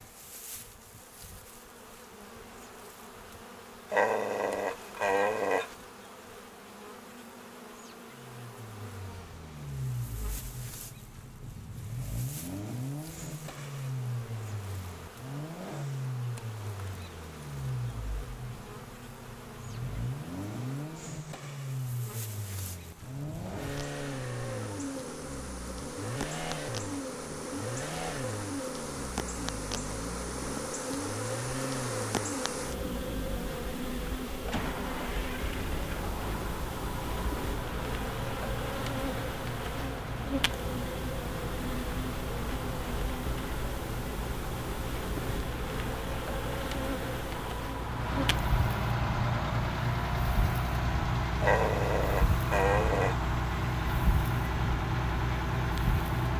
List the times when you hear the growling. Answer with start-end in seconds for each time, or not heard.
3.9-5.8, 51.4-53.1.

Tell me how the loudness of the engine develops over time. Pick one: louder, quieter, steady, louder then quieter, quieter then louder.
louder.